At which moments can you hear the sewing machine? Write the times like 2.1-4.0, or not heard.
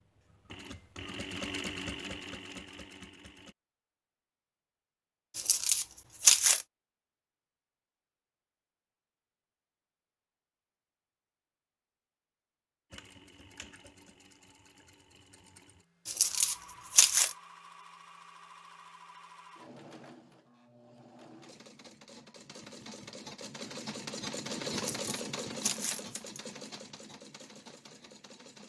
0.0-3.5, 12.9-28.6.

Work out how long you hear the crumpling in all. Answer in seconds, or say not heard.
4 s.